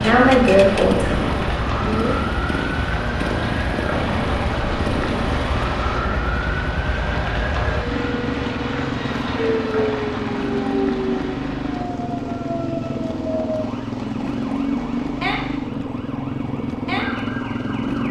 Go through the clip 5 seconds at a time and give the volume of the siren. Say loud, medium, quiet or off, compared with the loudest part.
loud, loud, loud, medium.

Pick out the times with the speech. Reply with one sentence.
The speech can be heard from 0.0 to 2.2 s.